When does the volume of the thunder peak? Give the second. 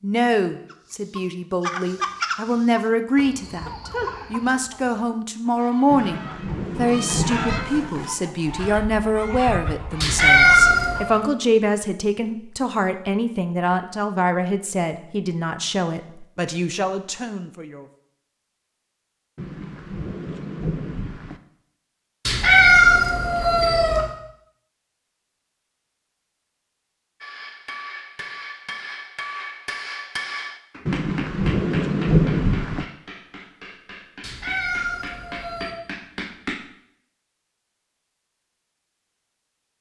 32 s.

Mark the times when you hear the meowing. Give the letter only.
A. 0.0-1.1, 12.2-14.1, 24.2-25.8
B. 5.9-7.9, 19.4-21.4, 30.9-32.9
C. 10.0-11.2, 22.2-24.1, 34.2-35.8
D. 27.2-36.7
C.